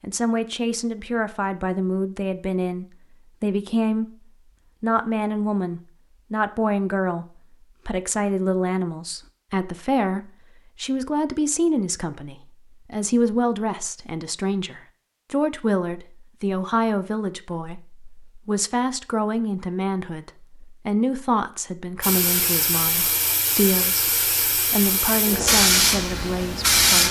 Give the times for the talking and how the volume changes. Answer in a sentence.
The talking can be heard from 0.0 to 27.0 s, at a steady volume.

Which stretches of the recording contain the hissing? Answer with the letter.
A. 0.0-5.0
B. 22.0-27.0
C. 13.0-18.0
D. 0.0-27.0
B.